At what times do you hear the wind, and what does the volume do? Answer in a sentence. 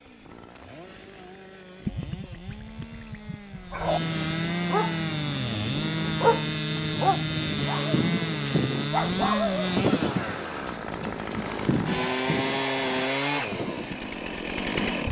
You can hear the wind from 3.5 to 15.0 s, getting louder then quieter.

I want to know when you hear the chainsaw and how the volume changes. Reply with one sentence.
You can hear the chainsaw from 0.0 to 15.0 s, getting louder.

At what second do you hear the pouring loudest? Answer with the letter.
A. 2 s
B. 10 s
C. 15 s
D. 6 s
A.